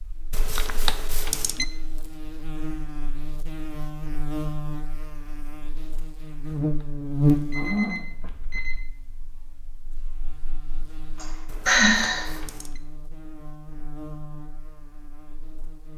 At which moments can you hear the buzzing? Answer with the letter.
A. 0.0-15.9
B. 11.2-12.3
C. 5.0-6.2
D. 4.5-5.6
A.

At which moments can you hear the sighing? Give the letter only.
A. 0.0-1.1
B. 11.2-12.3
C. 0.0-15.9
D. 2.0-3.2
B.